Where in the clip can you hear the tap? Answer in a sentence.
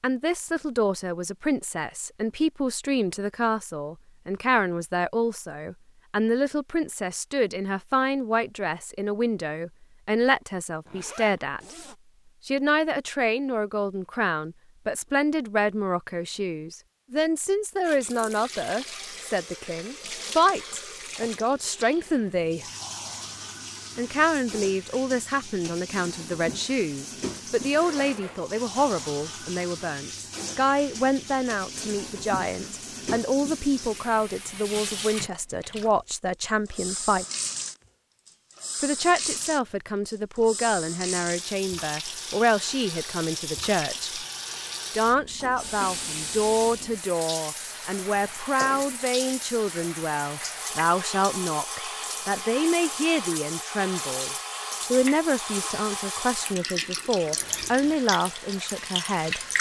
You can hear the tap from 17.8 to 59.5 s.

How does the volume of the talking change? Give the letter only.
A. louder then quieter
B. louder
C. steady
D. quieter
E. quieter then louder
C.